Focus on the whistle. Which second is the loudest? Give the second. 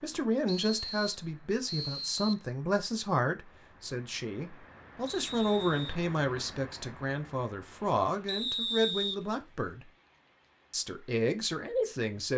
9 s.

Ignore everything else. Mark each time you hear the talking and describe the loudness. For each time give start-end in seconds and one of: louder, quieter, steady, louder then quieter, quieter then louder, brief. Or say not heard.
0.0-9.8 steady
10.7-12.3 brief.